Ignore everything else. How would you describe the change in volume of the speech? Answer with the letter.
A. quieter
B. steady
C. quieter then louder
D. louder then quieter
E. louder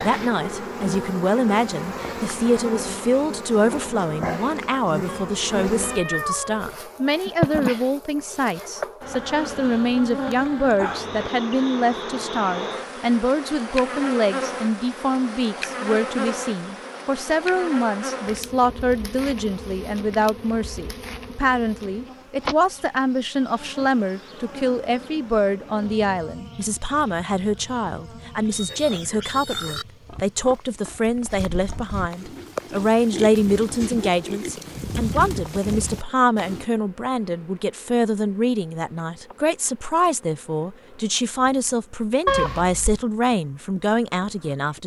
B.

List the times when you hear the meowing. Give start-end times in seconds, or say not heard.
5.0-6.8, 42.2-43.0.